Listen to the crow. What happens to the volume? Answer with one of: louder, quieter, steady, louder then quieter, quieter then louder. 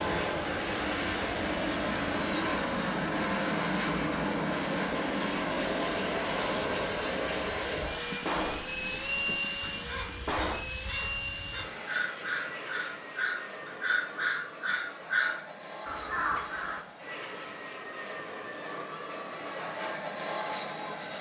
louder.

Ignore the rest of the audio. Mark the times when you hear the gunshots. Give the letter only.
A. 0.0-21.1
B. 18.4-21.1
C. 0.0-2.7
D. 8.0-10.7
D.